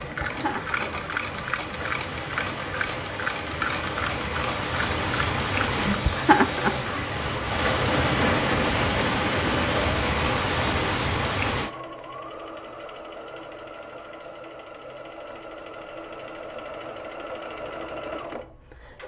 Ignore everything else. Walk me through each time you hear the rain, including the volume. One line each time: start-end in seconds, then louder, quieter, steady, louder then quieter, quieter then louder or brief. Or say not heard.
0.0-11.7 louder.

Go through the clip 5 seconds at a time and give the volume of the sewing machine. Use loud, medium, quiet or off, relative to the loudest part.
loud, loud, medium, medium.